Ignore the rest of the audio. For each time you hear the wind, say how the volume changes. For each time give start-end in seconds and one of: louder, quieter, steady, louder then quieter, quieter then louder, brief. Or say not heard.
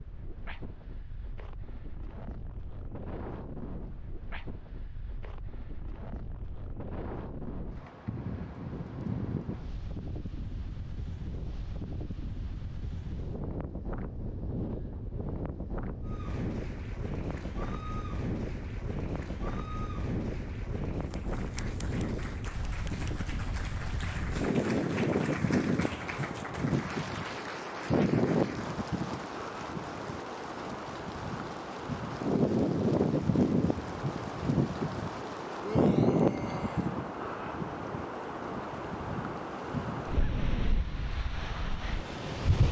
0.0-42.6 louder.